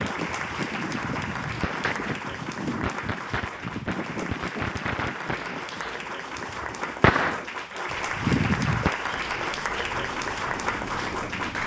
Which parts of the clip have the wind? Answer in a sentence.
The wind can be heard from 0.0 to 11.6 s.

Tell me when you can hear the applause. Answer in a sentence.
The applause can be heard from 0.0 to 11.6 s.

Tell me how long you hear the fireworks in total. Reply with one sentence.
The fireworks can be heard for 9 seconds in total.